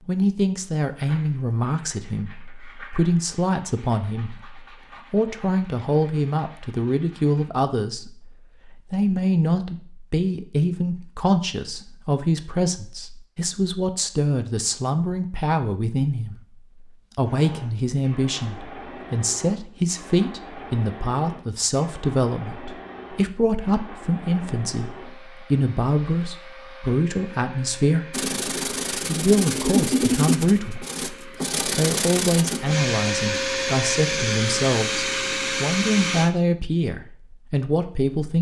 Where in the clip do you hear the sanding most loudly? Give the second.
30 s.